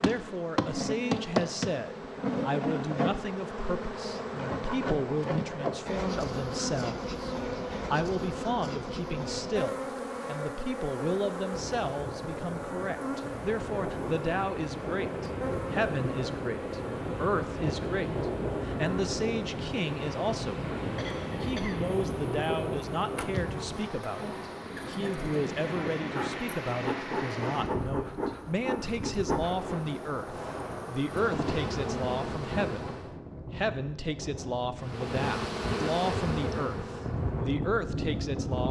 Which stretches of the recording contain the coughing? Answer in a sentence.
The coughing can be heard from 20.9 to 21.9 s.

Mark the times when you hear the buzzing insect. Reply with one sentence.
The buzzing insect can be heard from 0.0 to 33.1 s and from 34.8 to 38.6 s.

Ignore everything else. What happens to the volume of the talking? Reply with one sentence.
The volume of the talking stays about the same.